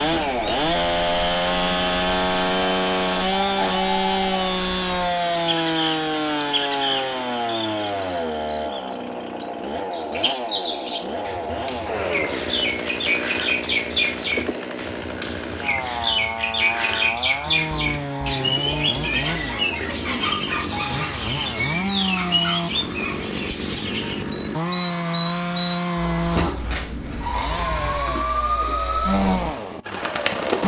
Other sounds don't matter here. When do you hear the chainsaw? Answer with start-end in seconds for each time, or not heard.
0.0-30.6.